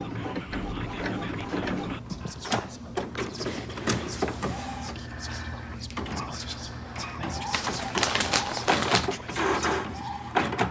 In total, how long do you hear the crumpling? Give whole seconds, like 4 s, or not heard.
2 s.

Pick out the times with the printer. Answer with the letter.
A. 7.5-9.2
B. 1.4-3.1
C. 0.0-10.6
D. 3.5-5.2
C.